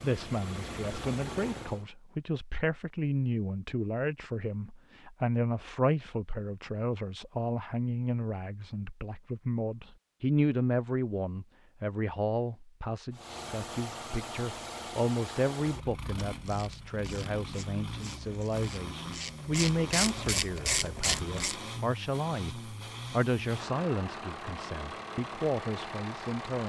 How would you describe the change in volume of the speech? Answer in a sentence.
The volume of the speech stays about the same.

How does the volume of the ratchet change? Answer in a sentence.
The volume of the ratchet goes up.